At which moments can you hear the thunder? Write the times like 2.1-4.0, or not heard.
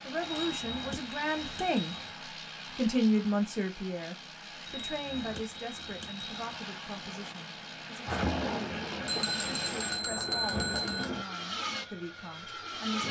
8.1-11.2.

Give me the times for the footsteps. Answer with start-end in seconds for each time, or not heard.
not heard.